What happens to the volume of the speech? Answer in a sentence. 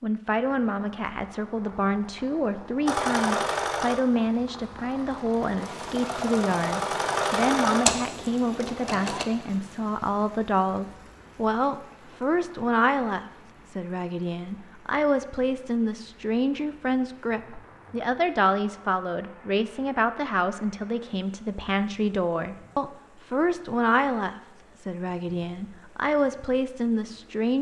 The loudness of the speech stays about the same.